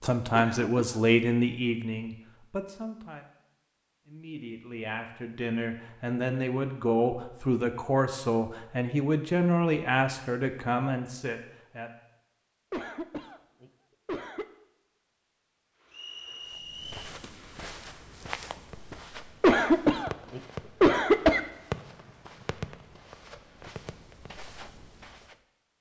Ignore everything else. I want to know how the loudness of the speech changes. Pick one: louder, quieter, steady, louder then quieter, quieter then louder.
quieter then louder.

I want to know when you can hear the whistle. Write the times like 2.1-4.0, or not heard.
15.9-17.0.